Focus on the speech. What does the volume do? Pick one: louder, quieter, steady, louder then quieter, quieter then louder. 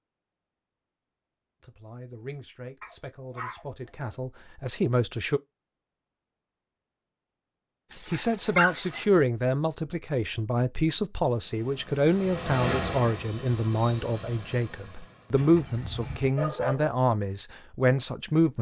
louder.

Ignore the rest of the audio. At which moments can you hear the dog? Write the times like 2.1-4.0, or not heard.
2.8-3.6, 7.9-9.1, 15.3-16.9.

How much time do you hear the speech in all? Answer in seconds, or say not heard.
14 s.